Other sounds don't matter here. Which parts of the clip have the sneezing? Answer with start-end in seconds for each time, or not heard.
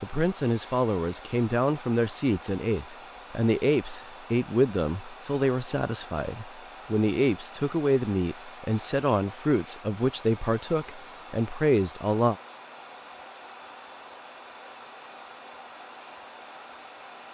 not heard.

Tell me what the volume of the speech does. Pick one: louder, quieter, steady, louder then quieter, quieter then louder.
steady.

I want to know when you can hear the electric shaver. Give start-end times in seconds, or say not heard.
not heard.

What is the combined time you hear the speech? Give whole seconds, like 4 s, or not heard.
12 s.